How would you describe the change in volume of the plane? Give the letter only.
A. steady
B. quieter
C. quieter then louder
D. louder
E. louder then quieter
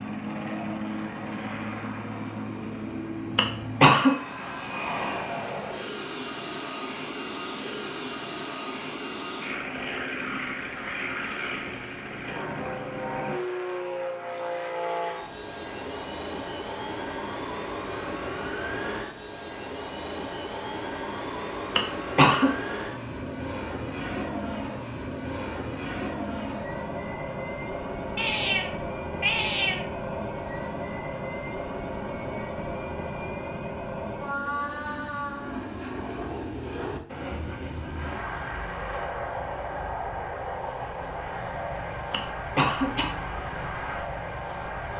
A.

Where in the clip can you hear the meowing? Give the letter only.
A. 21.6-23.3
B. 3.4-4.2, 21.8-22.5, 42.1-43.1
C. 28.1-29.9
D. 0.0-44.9
C.